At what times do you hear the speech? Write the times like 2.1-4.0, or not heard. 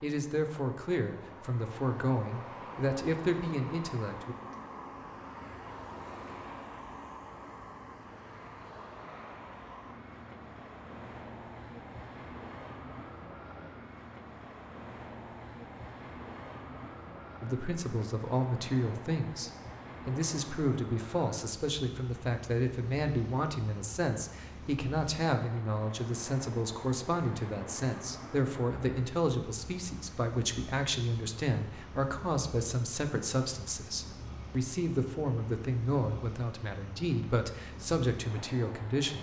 0.0-4.3, 17.4-39.1.